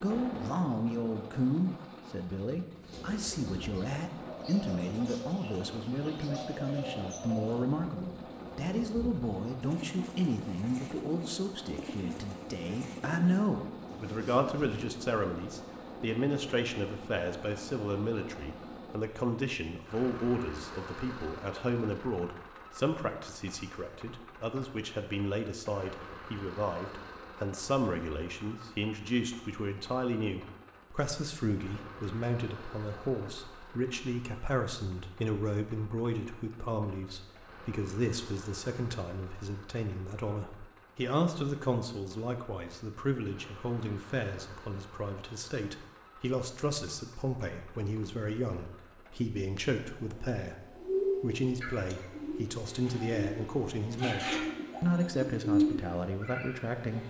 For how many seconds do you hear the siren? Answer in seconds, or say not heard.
not heard.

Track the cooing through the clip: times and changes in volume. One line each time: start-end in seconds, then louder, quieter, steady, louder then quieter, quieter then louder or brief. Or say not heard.
2.7-14.7 steady
50.8-56.8 louder.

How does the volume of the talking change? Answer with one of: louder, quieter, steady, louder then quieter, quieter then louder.
steady.